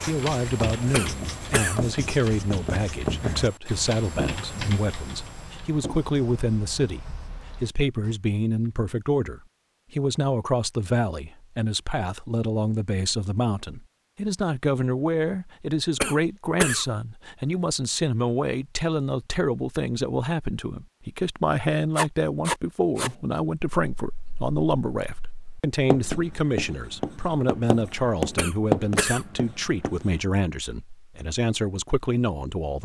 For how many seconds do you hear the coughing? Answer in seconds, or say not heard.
3 s.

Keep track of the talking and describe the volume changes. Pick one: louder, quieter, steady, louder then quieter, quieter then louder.
steady.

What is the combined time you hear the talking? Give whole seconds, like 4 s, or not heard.
33 s.